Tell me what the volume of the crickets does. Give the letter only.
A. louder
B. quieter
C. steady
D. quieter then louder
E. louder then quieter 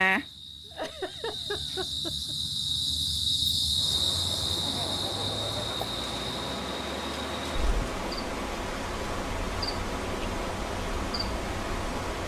E.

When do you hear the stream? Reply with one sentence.
You can hear the stream from 3.7 to 12.2 s.